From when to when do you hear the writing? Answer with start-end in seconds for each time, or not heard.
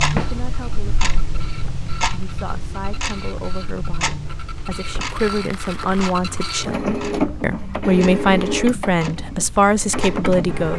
not heard.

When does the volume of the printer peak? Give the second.
7 s.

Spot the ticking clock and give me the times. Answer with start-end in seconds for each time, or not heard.
0.0-10.7.